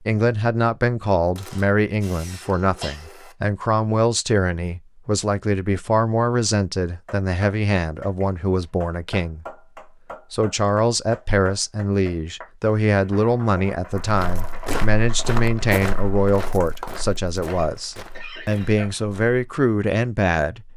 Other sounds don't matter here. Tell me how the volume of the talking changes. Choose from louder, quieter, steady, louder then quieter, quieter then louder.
steady.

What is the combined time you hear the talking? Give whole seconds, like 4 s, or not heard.
20 s.